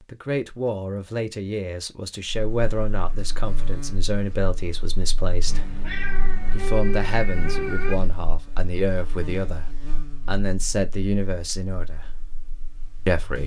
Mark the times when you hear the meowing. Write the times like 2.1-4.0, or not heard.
5.5-8.0.